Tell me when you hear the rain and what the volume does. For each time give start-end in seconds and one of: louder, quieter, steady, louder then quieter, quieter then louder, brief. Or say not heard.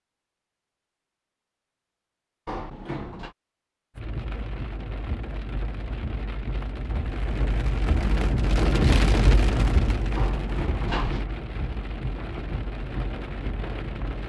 4.0-14.2 louder then quieter.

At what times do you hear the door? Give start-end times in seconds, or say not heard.
2.5-3.4, 10.2-11.2.